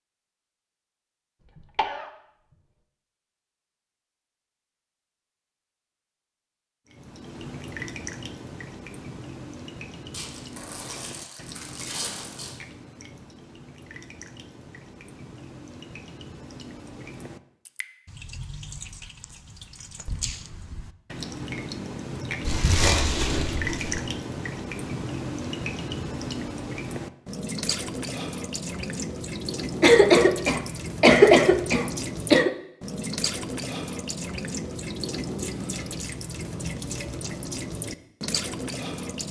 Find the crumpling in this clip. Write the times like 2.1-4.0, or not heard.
10.1-12.6, 22.4-24.0.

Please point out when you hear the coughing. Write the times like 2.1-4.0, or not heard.
1.6-2.1, 29.8-32.5.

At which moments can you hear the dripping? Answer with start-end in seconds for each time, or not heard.
6.8-39.2.